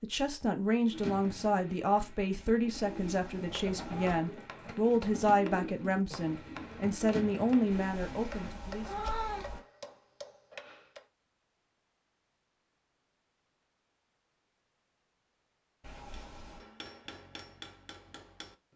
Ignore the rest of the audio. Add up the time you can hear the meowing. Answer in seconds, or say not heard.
4 s.